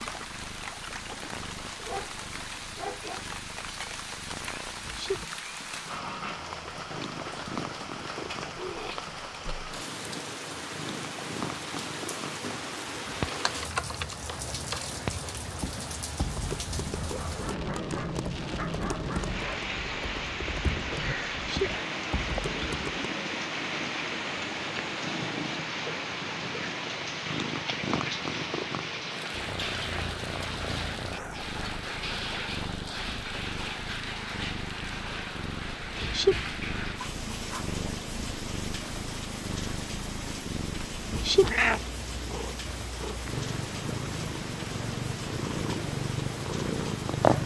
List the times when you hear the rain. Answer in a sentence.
You can hear the rain from 0.0 to 47.4 s.